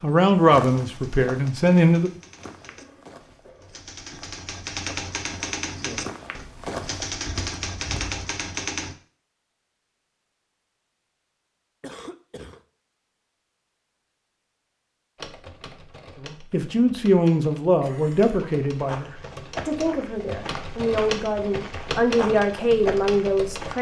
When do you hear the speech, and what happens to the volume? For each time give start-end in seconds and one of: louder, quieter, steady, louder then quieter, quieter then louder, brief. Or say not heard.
0.0-2.1 brief
16.2-23.7 quieter then louder.